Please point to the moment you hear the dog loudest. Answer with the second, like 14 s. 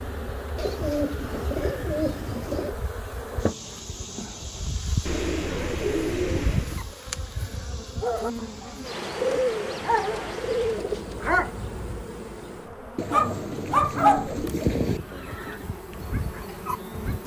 14 s.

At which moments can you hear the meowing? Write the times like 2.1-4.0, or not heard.
not heard.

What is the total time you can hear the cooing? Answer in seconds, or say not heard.
8 s.